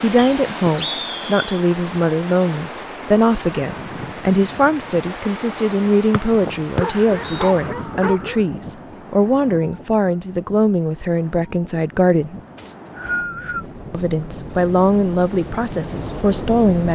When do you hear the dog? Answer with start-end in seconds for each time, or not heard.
6.8-8.4.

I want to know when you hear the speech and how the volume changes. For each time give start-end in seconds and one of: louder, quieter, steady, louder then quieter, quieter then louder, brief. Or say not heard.
0.0-12.4 steady
13.9-16.8 brief.